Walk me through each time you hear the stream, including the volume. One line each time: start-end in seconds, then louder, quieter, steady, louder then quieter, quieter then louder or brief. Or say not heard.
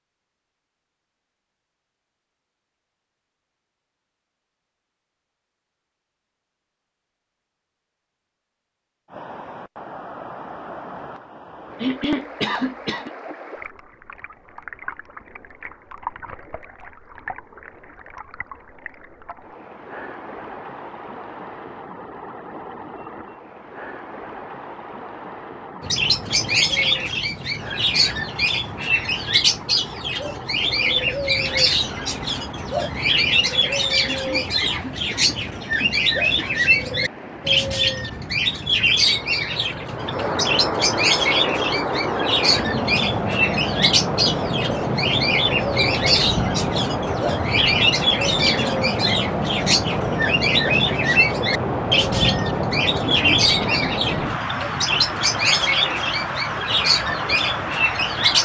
9.1-58.4 louder.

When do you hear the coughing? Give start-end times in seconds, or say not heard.
11.8-13.1, 34.0-36.5, 53.0-54.4.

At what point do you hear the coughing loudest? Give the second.
12 s.